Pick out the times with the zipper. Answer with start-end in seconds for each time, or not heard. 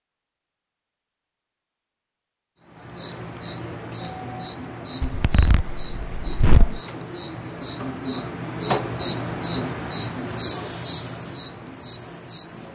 5.0-6.8.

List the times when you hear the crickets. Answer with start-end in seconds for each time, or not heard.
2.8-12.6.